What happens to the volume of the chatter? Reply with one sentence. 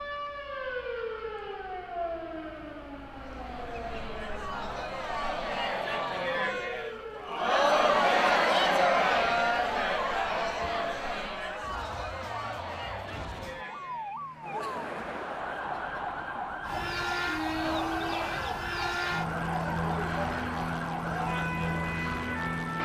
The volume of the chatter goes up, then down.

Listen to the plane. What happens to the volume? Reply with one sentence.
The volume of the plane stays about the same.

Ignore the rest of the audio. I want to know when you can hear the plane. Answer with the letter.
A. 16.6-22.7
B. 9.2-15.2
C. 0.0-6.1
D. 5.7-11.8
A.